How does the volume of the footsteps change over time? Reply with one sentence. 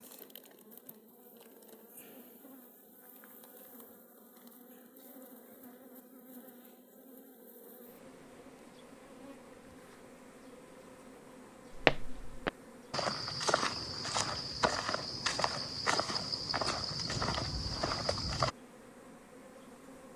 The loudness of the footsteps stays about the same.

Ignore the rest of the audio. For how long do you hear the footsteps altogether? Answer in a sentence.
You can hear the footsteps for 7 seconds altogether.